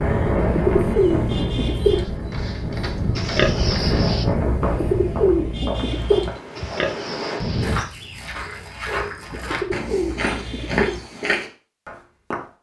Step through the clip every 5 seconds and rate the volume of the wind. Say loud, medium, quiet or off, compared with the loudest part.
loud, medium, off.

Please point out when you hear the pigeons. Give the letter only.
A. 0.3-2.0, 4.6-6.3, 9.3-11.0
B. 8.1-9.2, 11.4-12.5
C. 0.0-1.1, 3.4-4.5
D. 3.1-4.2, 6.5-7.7
A.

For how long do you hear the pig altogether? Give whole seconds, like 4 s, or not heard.
2 s.